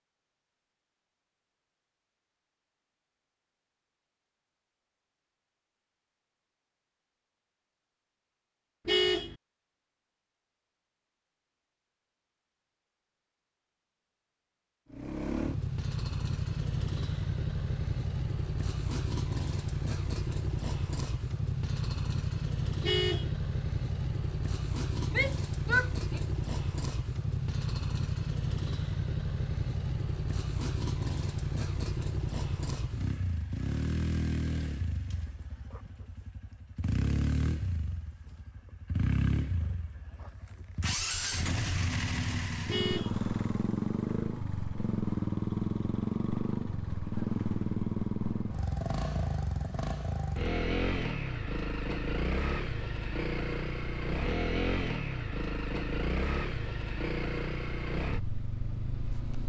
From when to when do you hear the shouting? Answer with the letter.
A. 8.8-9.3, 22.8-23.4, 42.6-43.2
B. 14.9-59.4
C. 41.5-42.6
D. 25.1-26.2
D.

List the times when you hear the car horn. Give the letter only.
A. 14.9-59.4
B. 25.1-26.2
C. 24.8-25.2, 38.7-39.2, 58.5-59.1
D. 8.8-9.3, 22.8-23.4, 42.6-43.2
D.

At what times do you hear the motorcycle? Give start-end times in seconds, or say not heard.
14.9-59.4.